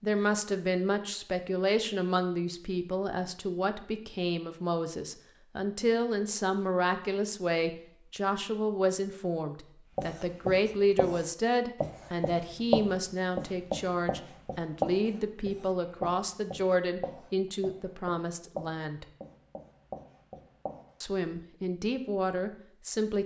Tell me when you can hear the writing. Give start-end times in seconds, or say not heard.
9.9-20.9.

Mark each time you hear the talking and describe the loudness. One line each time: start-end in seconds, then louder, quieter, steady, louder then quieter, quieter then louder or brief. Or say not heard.
0.0-19.1 steady
21.0-23.2 brief.